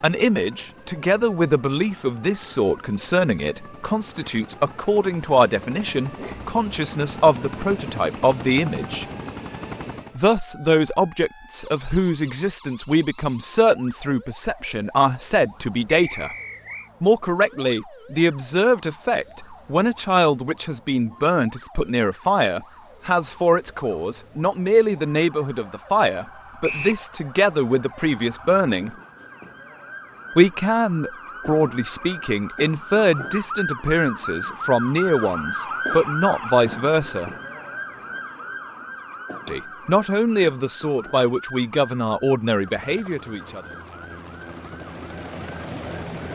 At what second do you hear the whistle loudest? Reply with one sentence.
The volume of the whistle peaks at 27 seconds.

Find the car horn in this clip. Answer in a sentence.
The car horn can't be heard in this clip.